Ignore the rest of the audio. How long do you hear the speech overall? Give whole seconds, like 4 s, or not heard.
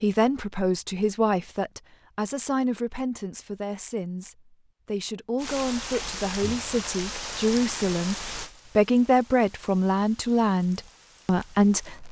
12 s.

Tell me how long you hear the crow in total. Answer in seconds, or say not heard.
not heard.